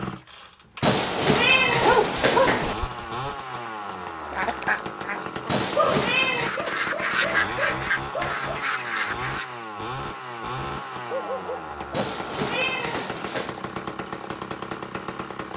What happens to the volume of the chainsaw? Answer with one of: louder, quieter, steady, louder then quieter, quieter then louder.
steady.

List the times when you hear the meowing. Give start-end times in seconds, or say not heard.
0.8-2.8, 5.5-6.5, 11.9-13.7.